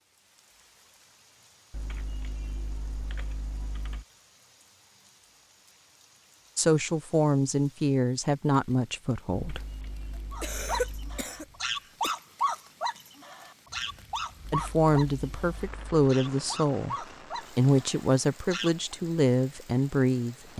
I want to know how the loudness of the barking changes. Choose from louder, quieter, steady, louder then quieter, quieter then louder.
quieter.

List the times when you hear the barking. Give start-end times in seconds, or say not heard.
10.3-18.9.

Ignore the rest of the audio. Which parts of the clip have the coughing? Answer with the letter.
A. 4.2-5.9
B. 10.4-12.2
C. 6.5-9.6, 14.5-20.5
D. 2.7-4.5
B.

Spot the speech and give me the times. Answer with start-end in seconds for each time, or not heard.
6.5-9.6, 14.5-20.5.